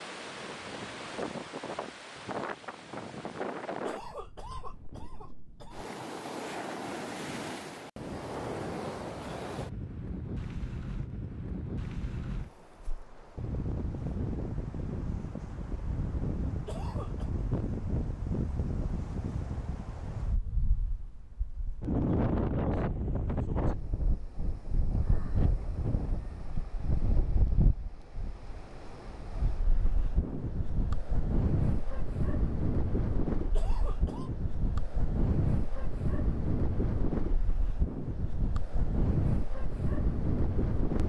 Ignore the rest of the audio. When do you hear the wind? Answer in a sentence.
You can hear the wind from 0.0 to 41.0 s.